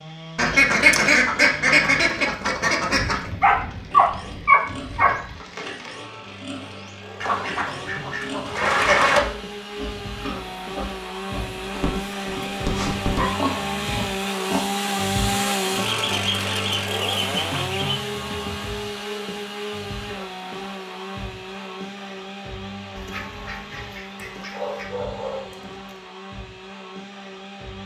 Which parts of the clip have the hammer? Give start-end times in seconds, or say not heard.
not heard.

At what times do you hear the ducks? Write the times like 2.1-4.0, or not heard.
0.3-3.3, 7.2-9.2, 15.8-17.9, 22.9-25.1.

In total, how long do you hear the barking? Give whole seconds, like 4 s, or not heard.
6 s.